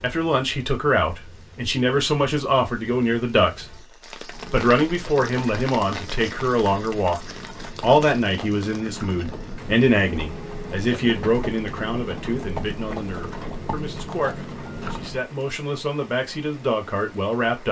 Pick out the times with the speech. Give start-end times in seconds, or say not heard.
0.0-17.6.